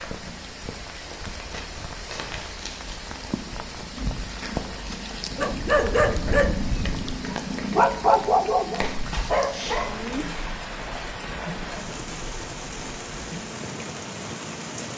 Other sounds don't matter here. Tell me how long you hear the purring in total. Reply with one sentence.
The purring can be heard for 15 seconds in total.